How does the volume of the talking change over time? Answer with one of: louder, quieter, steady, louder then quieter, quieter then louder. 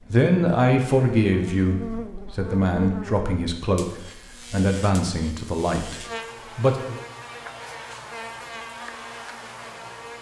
quieter.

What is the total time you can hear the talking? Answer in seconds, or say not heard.
7 s.